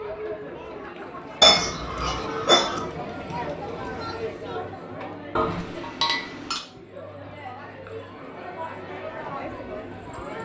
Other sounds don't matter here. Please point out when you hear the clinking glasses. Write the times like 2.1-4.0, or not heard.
1.4-2.8, 5.3-6.6.